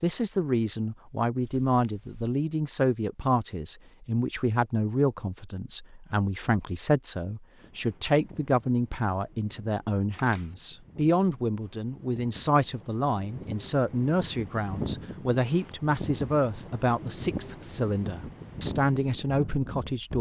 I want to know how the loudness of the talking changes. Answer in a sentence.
The volume of the talking stays about the same.